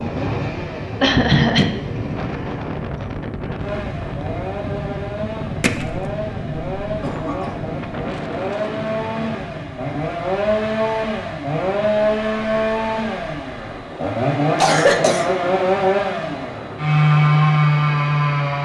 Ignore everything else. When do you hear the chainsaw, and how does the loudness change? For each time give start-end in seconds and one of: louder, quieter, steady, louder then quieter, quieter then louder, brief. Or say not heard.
0.0-18.6 louder.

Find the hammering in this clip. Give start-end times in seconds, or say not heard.
5.6-6.1.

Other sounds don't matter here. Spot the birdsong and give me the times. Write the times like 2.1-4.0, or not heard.
not heard.